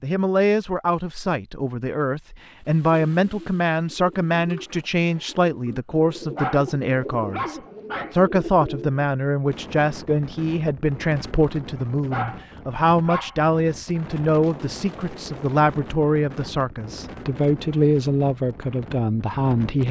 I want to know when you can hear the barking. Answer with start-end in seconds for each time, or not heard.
6.2-8.2, 11.9-13.4.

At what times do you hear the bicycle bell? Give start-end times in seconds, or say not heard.
not heard.